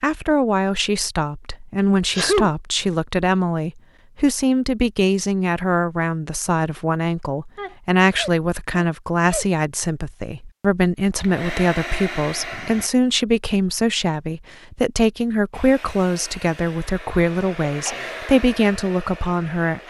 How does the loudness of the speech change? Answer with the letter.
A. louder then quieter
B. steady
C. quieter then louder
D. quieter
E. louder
B.